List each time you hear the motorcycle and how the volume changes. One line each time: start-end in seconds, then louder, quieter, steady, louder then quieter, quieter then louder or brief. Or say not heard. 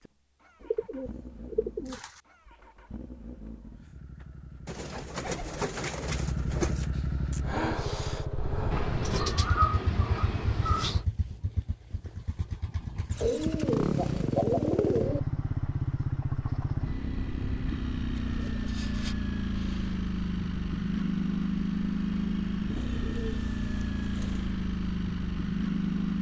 0.0-26.1 louder.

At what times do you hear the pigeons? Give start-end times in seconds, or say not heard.
0.7-2.1, 4.7-6.9, 8.7-11.1, 13.2-15.2, 18.1-20.0, 22.7-24.5.